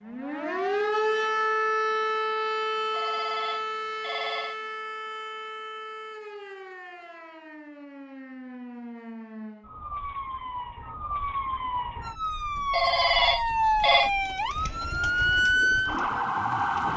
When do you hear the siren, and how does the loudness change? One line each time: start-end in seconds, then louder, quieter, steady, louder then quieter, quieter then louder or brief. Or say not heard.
0.0-16.9 quieter then louder.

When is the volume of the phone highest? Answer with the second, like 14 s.
13 s.